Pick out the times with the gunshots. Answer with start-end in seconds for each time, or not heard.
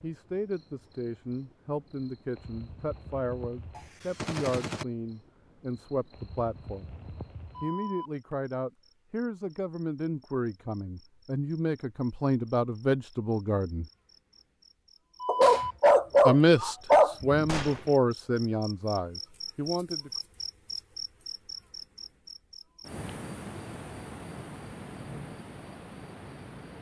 3.8-4.8, 17.4-17.9.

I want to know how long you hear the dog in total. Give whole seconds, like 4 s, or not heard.
2 s.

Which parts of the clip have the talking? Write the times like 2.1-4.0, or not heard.
0.0-6.9, 7.6-13.8, 16.2-20.1.